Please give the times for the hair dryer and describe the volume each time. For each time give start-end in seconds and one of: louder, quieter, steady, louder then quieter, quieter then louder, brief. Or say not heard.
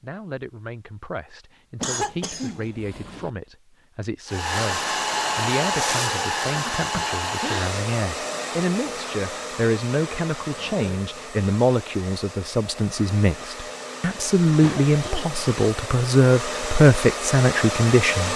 4.2-18.3 quieter then louder.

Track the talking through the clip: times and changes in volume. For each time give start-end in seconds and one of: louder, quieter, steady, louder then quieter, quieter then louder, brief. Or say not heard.
0.0-18.3 louder.